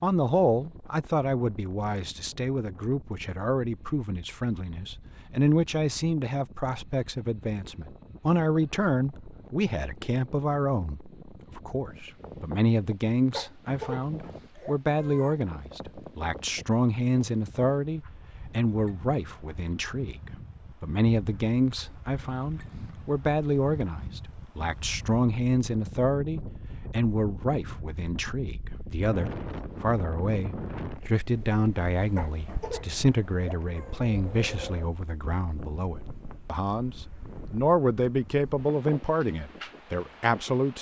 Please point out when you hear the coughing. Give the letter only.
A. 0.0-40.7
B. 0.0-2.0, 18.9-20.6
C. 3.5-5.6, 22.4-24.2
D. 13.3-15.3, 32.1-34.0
D.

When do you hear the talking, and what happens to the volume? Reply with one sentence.
The talking can be heard from 0.0 to 40.7 s, at a steady volume.